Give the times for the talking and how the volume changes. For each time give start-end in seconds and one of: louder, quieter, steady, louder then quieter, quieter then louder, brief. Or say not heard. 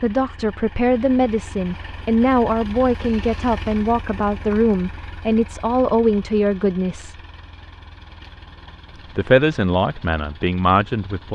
0.0-7.2 steady
9.2-11.3 brief.